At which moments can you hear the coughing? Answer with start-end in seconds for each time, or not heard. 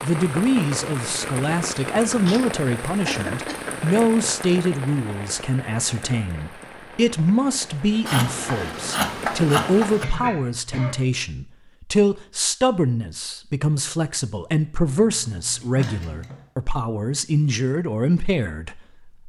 3.0-3.8, 10.0-11.0, 15.8-16.4.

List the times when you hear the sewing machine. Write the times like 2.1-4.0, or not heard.
not heard.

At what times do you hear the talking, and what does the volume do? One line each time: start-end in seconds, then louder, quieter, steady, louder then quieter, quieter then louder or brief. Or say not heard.
0.0-19.1 steady.